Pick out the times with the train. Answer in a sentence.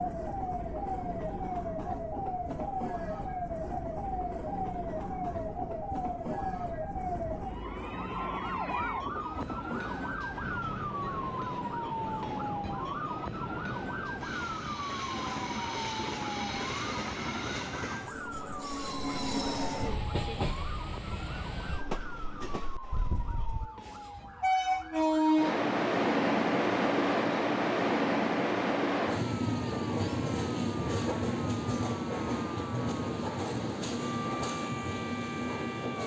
You can hear the train from 0.0 to 36.0 s.